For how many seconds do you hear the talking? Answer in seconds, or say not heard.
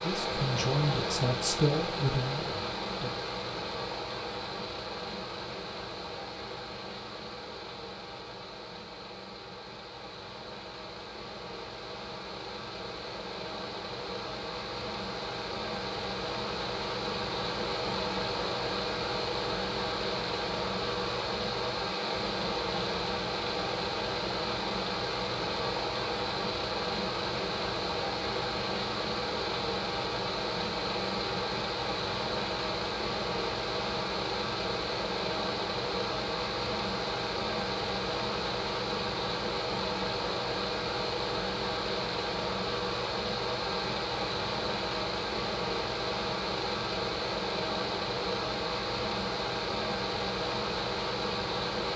3 s.